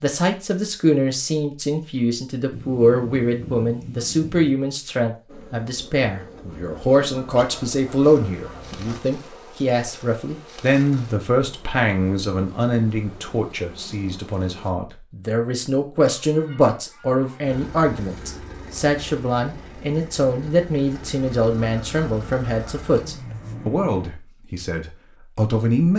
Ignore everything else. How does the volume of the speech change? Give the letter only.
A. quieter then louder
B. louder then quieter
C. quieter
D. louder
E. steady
E.